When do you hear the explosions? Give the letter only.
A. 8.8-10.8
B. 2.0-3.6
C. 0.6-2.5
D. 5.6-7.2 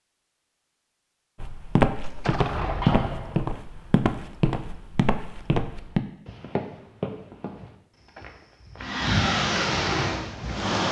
B.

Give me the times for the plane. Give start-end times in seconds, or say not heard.
8.8-10.8.